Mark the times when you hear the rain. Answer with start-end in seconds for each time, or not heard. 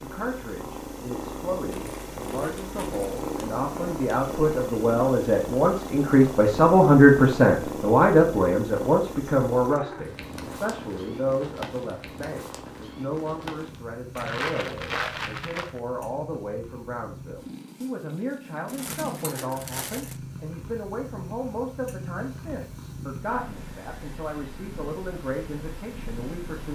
not heard.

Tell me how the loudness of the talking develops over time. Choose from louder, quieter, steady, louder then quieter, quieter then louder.
louder then quieter.